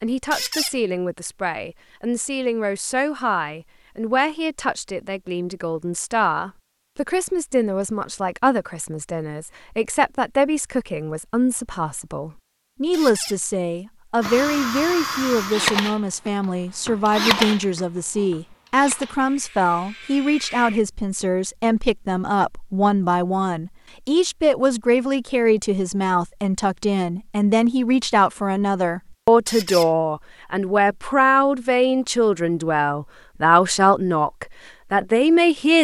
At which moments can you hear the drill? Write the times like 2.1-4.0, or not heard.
14.2-20.8.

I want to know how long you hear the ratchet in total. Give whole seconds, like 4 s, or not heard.
not heard.